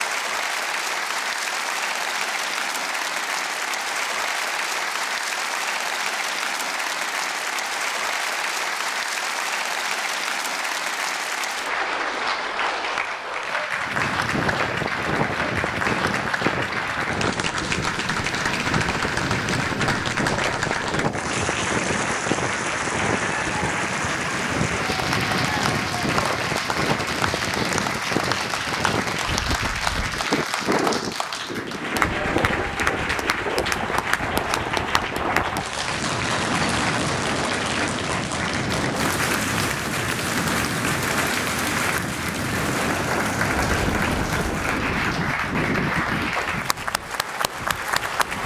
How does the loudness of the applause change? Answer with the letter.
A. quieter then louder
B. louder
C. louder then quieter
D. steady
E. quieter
D.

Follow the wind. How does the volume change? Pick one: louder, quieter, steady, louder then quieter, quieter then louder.
steady.